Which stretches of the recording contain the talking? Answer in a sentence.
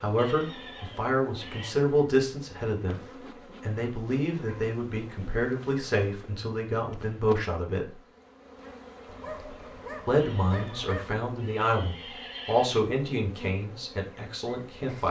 You can hear the talking from 0.0 to 3.0 s, from 3.6 to 8.0 s and from 10.1 to 15.0 s.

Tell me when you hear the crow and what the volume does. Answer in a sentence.
You can't hear the crow here.